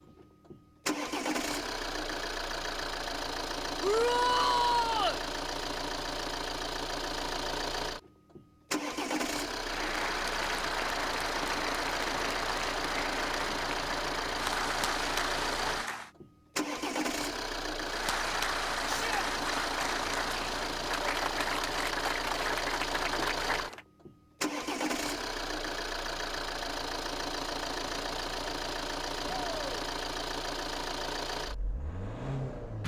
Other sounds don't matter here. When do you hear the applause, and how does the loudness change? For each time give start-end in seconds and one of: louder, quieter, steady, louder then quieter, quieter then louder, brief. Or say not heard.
9.6-16.1 steady
17.8-23.9 steady.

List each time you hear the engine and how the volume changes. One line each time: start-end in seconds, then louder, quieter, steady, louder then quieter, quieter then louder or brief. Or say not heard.
0.0-32.8 steady.